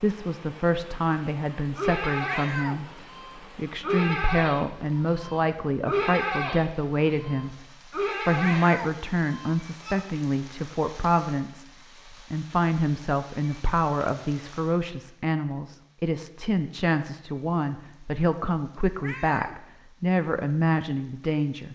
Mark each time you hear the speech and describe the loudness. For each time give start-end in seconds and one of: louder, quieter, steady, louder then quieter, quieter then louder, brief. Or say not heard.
0.0-21.7 steady.